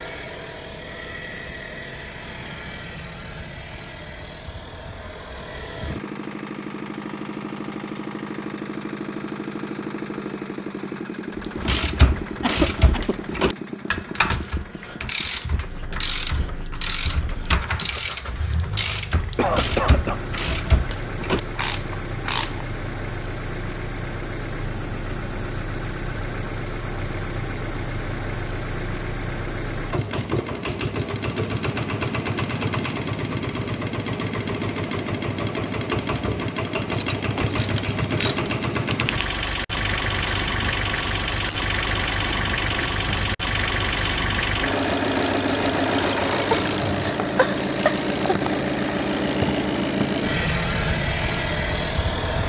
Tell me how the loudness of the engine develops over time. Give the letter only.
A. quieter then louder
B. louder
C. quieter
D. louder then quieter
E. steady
B.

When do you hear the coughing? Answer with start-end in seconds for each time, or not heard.
12.4-13.2, 19.1-20.2, 46.5-48.4.